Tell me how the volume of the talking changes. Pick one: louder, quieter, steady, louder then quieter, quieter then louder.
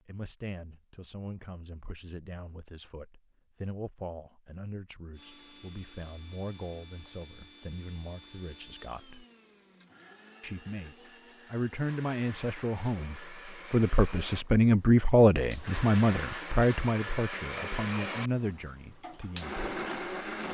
louder then quieter.